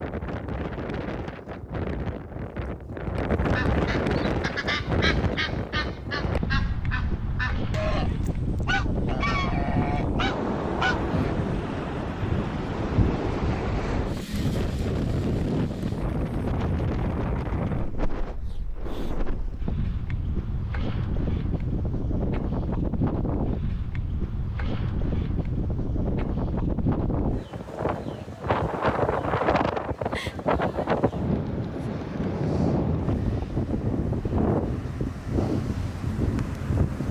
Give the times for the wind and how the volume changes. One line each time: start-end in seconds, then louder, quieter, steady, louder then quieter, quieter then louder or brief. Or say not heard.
0.0-37.0 steady.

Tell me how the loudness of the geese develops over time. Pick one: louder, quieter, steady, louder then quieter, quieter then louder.
steady.